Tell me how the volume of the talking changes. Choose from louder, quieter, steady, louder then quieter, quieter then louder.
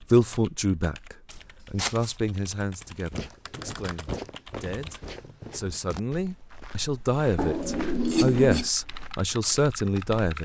quieter then louder.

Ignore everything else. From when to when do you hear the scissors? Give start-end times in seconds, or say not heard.
1.3-2.1, 7.3-8.7.